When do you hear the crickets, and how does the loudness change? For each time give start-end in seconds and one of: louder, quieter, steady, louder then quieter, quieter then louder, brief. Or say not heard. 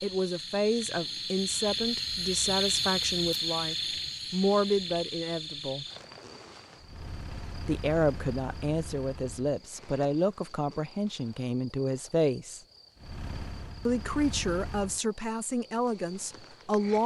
0.0-17.0 quieter.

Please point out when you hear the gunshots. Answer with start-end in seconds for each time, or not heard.
not heard.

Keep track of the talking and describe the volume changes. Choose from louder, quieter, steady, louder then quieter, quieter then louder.
steady.